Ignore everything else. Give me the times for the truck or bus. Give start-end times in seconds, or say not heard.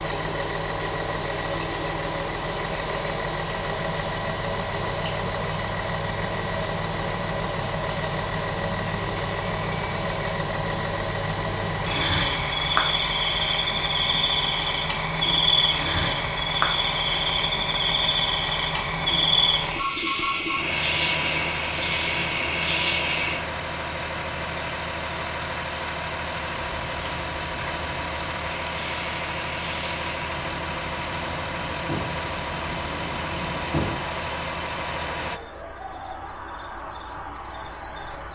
0.0-35.4.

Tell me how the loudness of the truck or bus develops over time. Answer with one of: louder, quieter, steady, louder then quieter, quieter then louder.
steady.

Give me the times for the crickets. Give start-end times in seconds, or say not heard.
0.0-38.3.